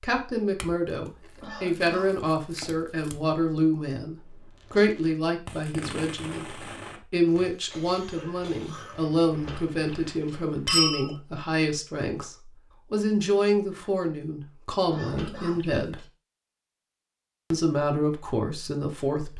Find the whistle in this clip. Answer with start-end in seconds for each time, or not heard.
not heard.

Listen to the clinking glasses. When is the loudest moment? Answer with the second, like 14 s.
11 s.